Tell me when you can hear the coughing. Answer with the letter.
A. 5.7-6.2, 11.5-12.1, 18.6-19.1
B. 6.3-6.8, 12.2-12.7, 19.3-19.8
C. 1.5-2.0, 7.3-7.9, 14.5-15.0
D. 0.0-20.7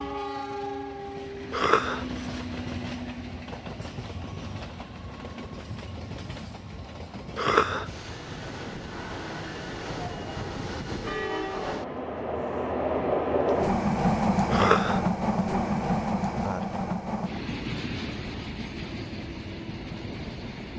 C.